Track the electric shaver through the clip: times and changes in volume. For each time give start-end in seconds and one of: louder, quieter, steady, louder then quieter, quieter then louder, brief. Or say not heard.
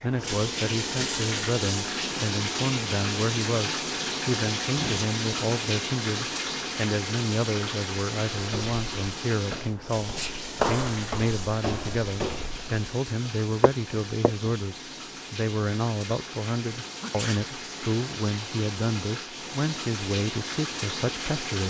not heard.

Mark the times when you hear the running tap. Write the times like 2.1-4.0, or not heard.
0.0-21.6.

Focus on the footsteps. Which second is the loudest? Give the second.
11 s.